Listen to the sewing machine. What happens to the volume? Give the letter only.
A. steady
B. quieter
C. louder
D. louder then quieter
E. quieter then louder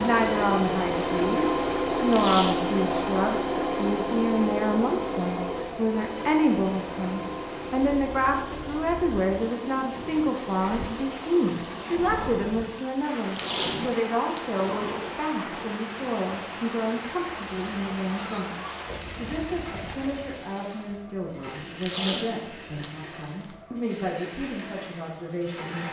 B.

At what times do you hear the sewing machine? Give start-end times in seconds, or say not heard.
0.0-25.8.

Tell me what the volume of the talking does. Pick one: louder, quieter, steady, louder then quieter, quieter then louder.
quieter.